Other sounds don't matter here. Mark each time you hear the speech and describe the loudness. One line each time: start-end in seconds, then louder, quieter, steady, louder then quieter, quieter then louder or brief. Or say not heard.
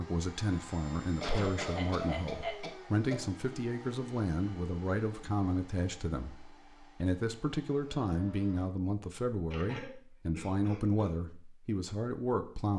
0.0-12.7 steady.